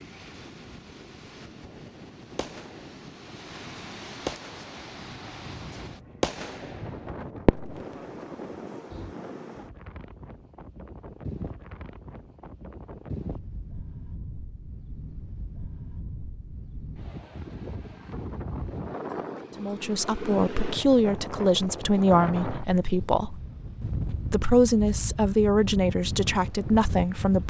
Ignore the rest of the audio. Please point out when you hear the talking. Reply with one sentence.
You can hear the talking from 19.6 to 23.4 s and from 24.3 to 27.4 s.